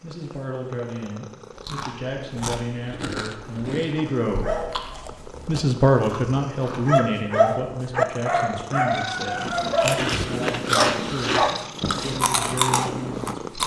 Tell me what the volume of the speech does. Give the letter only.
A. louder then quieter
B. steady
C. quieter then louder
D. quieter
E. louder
A.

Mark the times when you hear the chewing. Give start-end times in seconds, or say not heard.
1.5-7.0, 9.3-13.6.